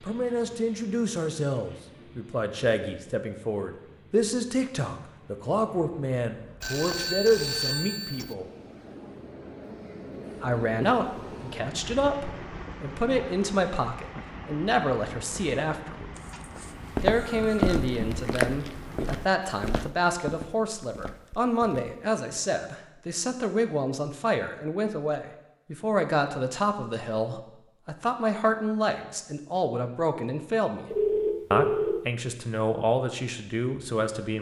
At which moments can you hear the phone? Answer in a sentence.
You can hear the phone from 6.6 to 8.3 s, from 16.1 to 17.8 s and from 30.9 to 32.0 s.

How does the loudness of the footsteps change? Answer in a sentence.
The loudness of the footsteps goes down.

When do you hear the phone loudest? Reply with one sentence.
The loudest moment of the phone is at 31 seconds.